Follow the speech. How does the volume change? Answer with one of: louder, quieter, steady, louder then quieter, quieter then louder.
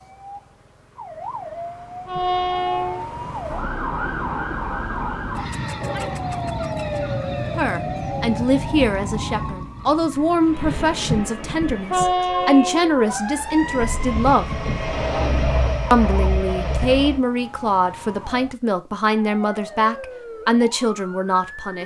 steady.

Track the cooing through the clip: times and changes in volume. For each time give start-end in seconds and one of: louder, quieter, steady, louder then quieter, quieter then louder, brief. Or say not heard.
not heard.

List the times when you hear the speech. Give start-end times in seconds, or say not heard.
7.5-14.6, 15.9-21.8.